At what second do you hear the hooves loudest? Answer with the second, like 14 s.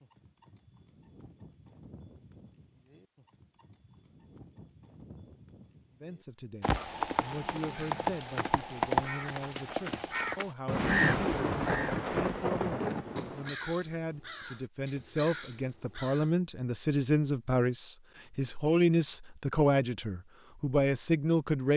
9 s.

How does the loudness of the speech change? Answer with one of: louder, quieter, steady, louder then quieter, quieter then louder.
louder.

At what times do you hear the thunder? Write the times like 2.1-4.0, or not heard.
10.7-13.6.